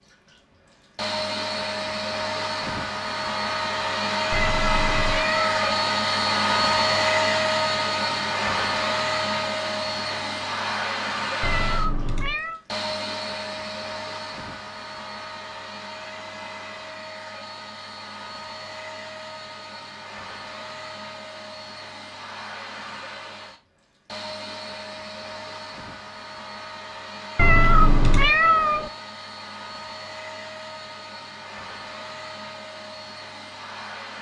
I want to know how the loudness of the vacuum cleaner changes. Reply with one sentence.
The loudness of the vacuum cleaner goes down.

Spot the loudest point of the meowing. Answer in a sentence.
The loudest moment of the meowing is at 28 seconds.